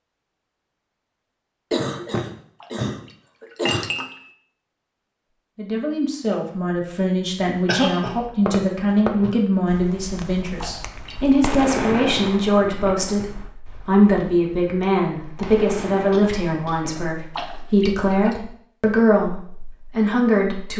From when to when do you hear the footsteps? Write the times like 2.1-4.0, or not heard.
not heard.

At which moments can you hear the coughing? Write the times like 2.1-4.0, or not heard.
1.7-3.9, 7.7-8.2, 16.1-17.9.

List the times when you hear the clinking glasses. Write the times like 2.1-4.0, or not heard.
2.6-4.2, 10.6-11.4, 17.4-18.4.